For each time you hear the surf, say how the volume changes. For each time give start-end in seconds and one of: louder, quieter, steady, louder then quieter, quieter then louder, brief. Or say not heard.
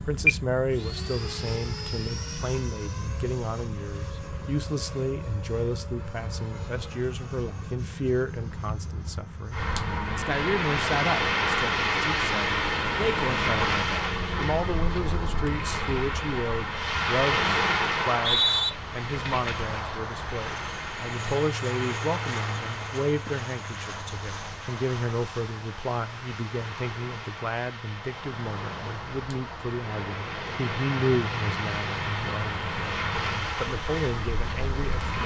9.5-35.2 quieter then louder.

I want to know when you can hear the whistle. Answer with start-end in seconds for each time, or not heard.
18.0-18.7.